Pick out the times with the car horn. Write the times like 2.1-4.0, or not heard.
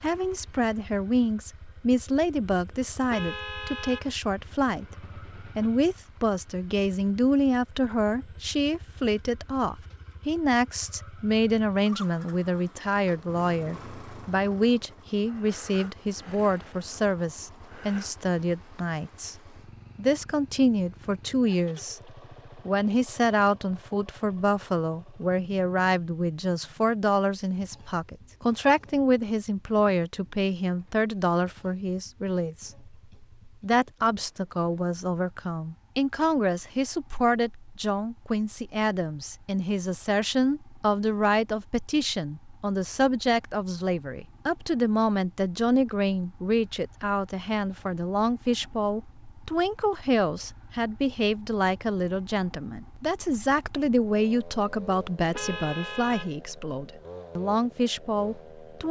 3.0-5.7, 55.3-56.4.